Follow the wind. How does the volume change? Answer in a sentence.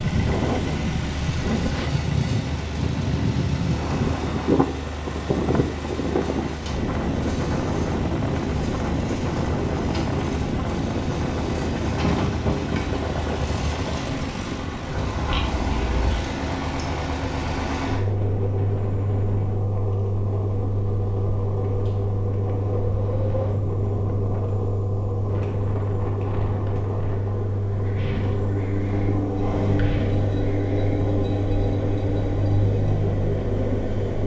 The volume of the wind goes down.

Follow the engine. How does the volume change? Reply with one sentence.
The loudness of the engine goes up.